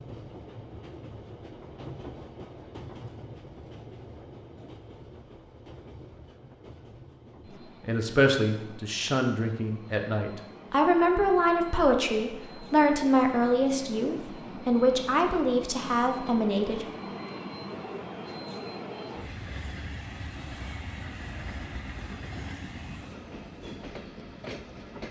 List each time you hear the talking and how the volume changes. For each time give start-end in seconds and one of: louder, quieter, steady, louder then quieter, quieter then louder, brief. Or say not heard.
7.8-16.9 steady.